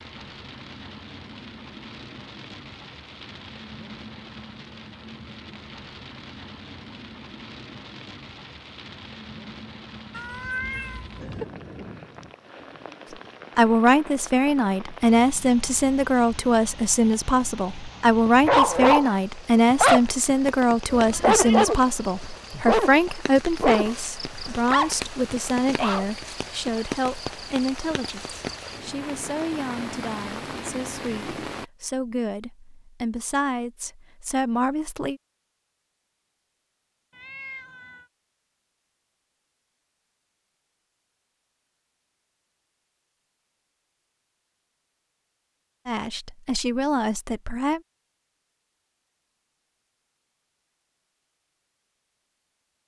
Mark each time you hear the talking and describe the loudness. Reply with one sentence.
The talking can be heard from 13.6 to 35.2 s, getting quieter; and briefly from 45.9 to 47.8 s.